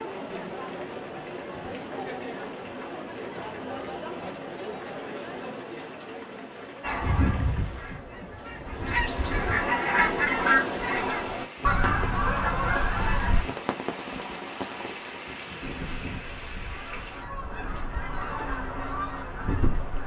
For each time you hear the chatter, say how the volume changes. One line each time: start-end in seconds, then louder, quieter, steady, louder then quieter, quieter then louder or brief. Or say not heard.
0.0-10.8 quieter then louder.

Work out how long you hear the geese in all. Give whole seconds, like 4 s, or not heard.
11 s.